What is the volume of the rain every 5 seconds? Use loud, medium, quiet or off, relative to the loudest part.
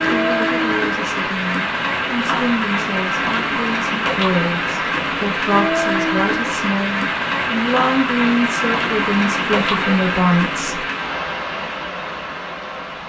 loud, loud, medium.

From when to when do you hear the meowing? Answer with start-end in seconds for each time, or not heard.
not heard.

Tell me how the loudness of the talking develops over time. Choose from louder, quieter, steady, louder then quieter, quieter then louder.
louder.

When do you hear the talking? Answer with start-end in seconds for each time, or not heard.
0.0-10.8.